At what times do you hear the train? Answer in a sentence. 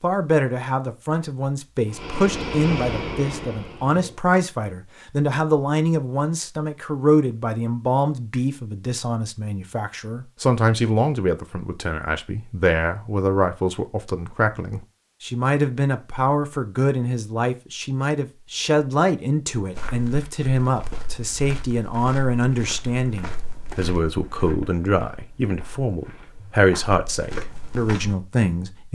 The train can be heard from 1.9 to 4.2 s.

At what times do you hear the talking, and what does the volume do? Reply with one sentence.
You can hear the talking from 0.0 to 28.9 s, at a steady volume.